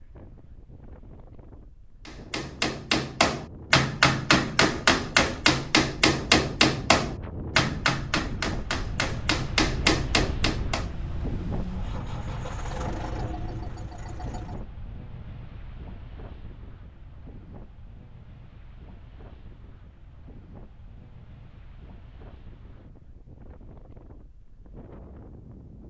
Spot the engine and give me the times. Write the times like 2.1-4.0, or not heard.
10.8-14.6.